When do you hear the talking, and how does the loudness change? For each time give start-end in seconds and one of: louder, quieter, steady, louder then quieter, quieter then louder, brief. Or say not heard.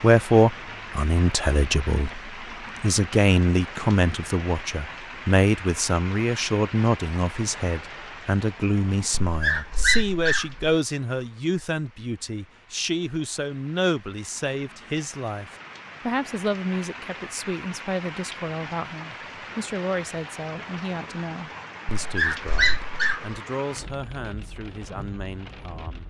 0.0-26.0 quieter.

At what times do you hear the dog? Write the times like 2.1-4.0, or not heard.
9.2-10.7, 22.0-23.3.